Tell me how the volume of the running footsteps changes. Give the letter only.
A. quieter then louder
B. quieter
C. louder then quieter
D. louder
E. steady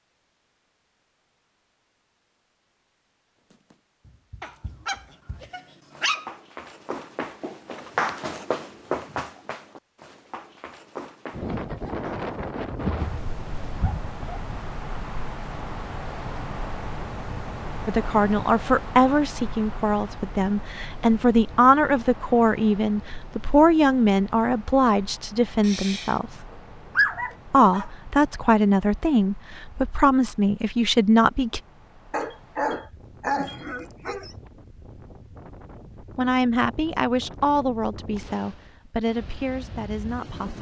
C.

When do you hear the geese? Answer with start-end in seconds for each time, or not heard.
not heard.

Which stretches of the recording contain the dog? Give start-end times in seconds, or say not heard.
4.4-6.3, 12.7-14.6, 25.6-27.9, 32.1-34.4.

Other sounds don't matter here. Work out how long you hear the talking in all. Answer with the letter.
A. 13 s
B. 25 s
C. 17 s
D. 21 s
C.